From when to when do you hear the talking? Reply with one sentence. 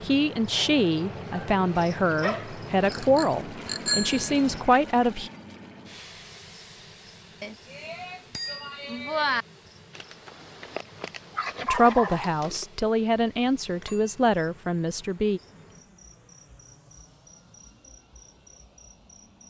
You can hear the talking from 0.0 to 5.3 s and from 11.7 to 15.4 s.